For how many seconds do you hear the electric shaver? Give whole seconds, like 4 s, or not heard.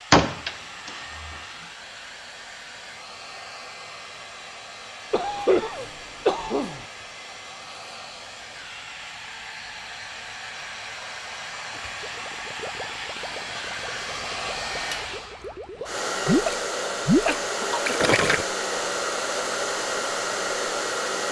not heard.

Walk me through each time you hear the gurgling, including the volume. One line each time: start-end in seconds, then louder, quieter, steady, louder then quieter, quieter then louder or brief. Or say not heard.
11.7-18.4 louder.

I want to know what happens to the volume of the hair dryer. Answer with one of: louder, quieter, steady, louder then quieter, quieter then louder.
louder.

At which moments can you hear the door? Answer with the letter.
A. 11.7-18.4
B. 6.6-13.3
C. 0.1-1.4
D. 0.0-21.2
C.